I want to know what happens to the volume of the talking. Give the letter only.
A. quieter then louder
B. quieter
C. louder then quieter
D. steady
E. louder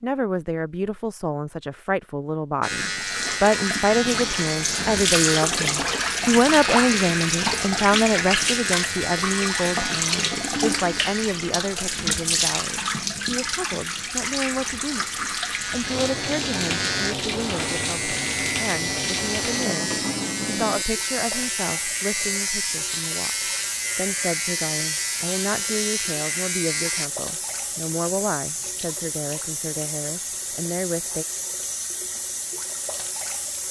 B.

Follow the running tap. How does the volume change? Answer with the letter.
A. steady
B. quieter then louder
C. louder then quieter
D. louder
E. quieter
E.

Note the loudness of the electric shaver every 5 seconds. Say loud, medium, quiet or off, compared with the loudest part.
loud, loud, medium, loud, loud, loud, off.